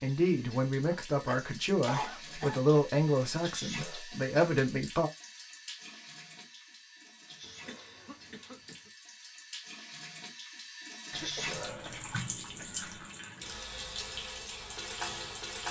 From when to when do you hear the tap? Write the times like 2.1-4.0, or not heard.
0.0-15.6.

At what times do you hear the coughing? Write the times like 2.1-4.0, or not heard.
0.9-2.6, 7.4-8.9, 11.1-12.9.